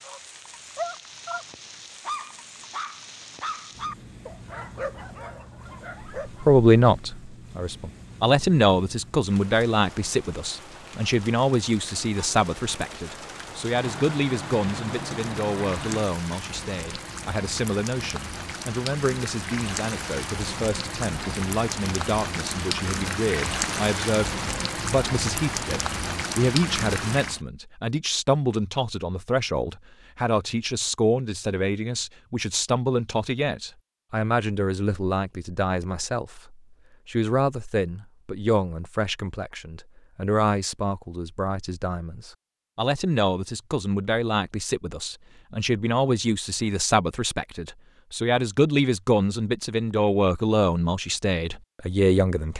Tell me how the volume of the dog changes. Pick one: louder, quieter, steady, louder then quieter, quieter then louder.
quieter.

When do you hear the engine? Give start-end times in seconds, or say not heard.
13.7-16.1.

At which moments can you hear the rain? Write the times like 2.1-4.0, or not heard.
0.0-27.4.